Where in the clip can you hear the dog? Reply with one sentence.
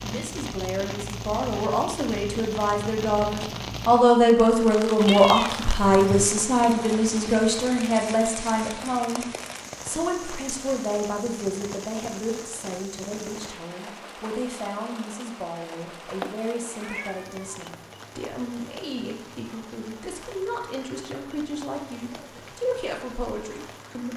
The dog can't be heard in this clip.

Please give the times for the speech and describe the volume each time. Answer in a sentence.
The speech can be heard from 0.0 to 24.1 s, getting quieter.